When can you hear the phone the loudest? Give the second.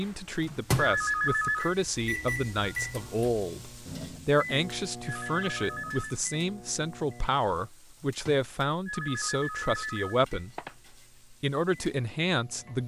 1 s.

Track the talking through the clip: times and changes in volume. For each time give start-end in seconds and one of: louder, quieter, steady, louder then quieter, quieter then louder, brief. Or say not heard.
0.0-10.5 steady
11.3-12.8 brief.